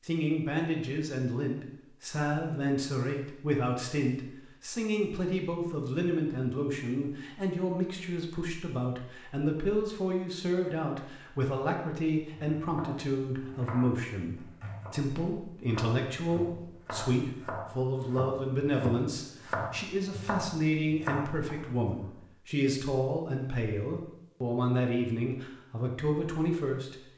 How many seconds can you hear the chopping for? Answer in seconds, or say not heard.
10 s.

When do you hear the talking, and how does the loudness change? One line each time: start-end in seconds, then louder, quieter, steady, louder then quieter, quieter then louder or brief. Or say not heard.
0.0-26.9 steady.